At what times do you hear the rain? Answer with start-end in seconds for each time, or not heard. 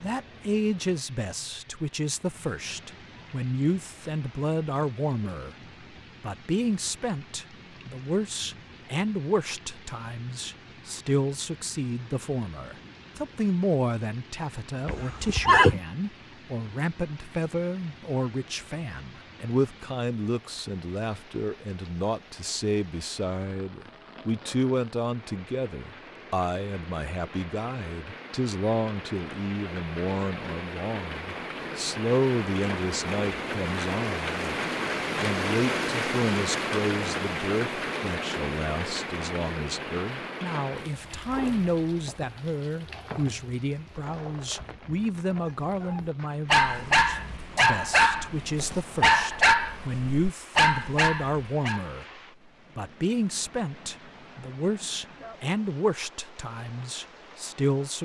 0.0-58.0.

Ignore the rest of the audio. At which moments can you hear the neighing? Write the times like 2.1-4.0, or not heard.
14.8-15.8.